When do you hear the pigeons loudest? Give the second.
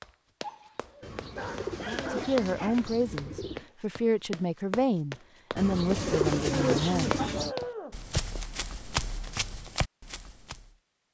7 s.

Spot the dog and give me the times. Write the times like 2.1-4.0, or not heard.
0.4-2.9, 7.2-8.0.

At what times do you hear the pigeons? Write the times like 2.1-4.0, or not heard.
1.0-3.6, 5.5-7.5.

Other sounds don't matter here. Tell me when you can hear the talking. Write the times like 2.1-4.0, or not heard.
1.8-7.2.